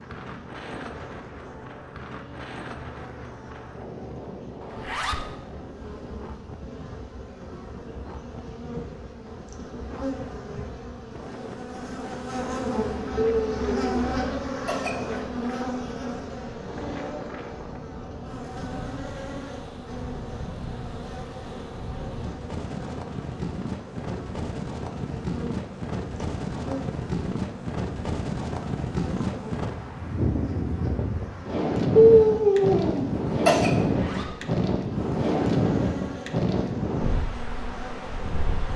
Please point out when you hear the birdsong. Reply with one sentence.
You can't hear the birdsong here.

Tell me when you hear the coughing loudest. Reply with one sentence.
The loudest moment of the coughing is at 32 seconds.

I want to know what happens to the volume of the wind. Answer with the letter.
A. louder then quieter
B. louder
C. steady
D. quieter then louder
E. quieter
B.